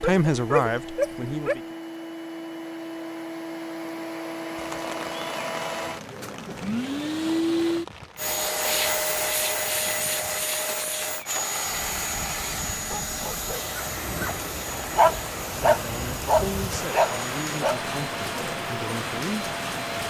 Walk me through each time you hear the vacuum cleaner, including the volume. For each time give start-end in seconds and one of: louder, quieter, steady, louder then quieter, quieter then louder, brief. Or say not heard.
0.0-20.0 louder then quieter.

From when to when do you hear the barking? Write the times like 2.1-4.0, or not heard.
0.0-1.6, 12.8-17.8.